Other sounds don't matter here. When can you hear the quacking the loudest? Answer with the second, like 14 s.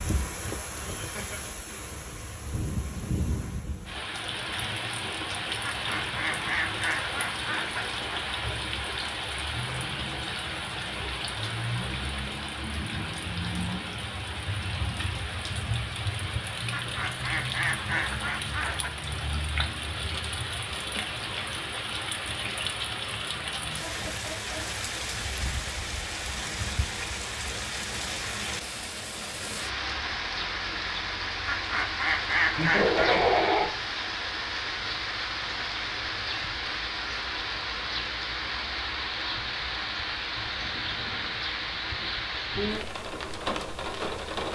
33 s.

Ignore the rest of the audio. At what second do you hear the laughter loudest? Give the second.
33 s.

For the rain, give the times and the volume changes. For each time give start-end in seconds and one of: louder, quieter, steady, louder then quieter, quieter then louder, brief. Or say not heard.
0.0-44.4 steady.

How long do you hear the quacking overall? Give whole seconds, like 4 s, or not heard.
7 s.